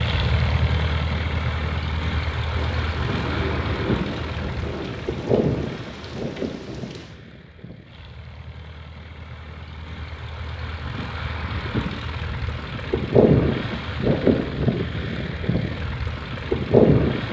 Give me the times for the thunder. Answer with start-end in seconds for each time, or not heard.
2.5-7.1.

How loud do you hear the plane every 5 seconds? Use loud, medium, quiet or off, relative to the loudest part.
medium, medium, loud, loud.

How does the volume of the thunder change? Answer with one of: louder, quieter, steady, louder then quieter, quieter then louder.
quieter.